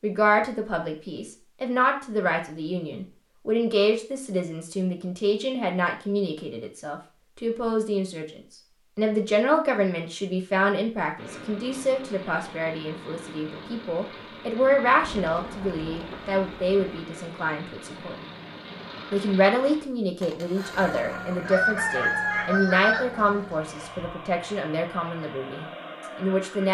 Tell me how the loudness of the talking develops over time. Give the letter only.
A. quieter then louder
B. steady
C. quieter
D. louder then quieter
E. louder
B.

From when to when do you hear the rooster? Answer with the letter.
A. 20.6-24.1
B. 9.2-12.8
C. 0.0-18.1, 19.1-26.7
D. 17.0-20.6
A.